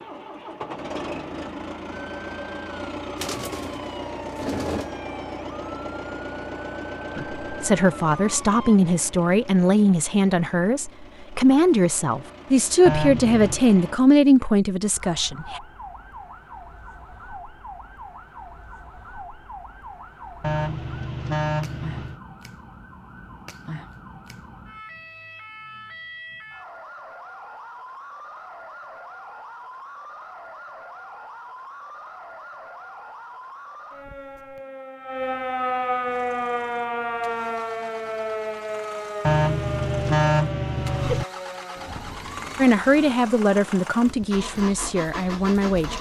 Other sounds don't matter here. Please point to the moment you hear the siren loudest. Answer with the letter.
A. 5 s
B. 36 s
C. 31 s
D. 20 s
B.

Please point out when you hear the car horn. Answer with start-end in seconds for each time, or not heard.
12.8-13.6, 20.4-22.2, 39.2-41.2.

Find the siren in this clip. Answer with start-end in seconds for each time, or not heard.
1.9-8.8, 14.9-43.1.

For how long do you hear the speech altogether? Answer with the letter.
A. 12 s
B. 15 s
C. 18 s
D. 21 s
A.